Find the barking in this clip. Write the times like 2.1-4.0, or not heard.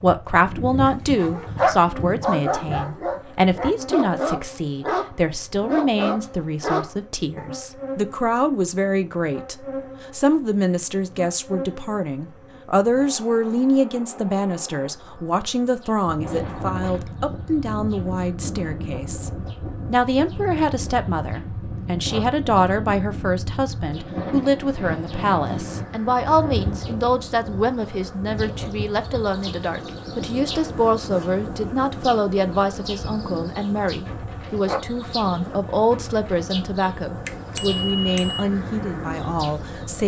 0.3-7.5.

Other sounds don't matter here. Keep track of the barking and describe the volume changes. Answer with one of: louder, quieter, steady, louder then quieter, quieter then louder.
steady.